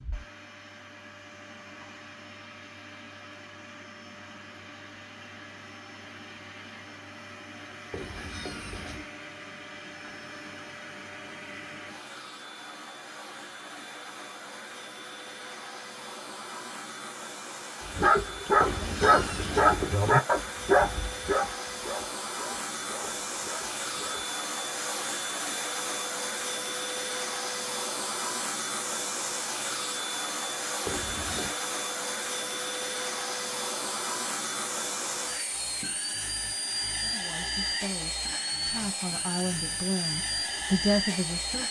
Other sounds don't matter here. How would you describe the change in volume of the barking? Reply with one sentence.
The loudness of the barking goes down.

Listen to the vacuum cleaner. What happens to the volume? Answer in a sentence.
The volume of the vacuum cleaner goes up.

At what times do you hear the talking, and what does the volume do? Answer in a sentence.
The talking can be heard from 36.9 to 41.6 s, getting louder.